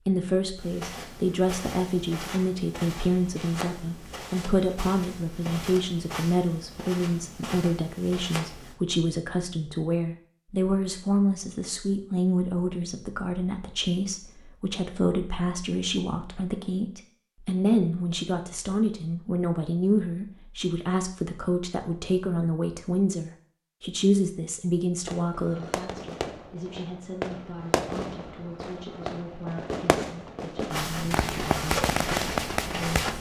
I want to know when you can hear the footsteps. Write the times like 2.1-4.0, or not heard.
0.6-8.8, 30.7-33.1.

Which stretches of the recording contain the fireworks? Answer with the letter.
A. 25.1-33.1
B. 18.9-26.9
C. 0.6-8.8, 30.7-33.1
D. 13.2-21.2
A.